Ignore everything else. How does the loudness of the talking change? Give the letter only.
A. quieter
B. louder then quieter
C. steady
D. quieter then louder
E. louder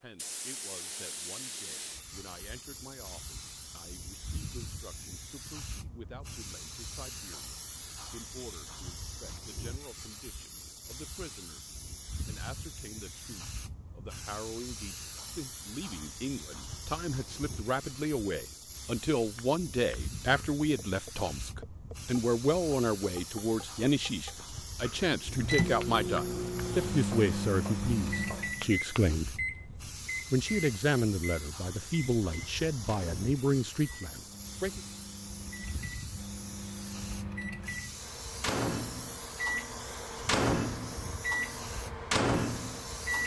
E.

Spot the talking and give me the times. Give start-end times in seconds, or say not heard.
0.0-11.7, 12.2-29.4, 30.3-34.8.